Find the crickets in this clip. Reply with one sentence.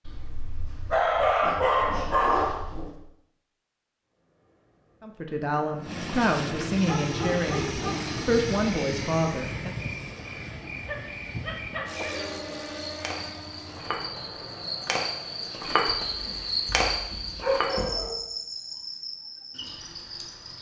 You can hear the crickets from 6.8 to 20.5 s.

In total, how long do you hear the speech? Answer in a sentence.
The speech can be heard for 5 seconds in total.